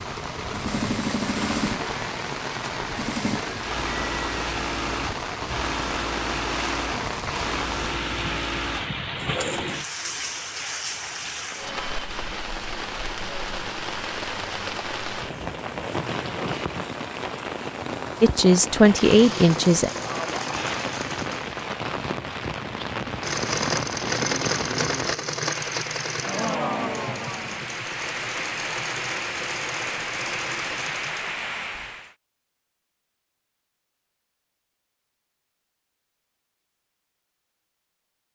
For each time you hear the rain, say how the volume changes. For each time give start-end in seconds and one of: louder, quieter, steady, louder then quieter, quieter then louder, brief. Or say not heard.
0.0-32.1 steady.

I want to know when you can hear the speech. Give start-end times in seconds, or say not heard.
18.2-19.9.